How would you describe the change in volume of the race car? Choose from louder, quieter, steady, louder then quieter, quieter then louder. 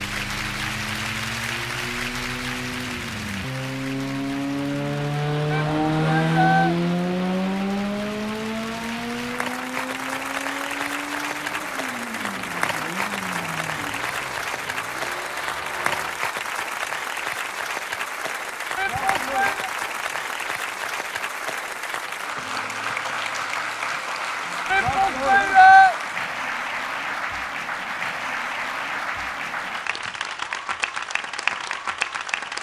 louder then quieter.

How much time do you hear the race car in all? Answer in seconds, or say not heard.
16 s.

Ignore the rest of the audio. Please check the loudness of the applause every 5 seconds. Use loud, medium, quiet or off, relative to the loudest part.
loud, medium, loud, loud, loud, loud, loud.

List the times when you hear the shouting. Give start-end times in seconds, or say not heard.
5.5-6.8, 18.8-19.7, 24.7-25.9.